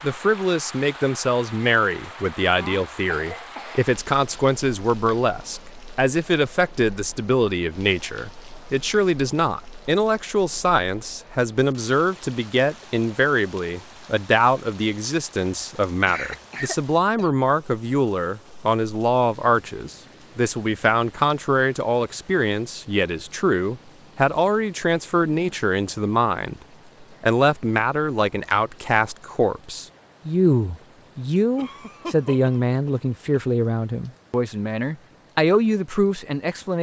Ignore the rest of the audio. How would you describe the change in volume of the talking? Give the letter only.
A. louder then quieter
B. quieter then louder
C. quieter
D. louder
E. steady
E.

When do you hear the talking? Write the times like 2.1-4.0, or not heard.
0.0-36.7.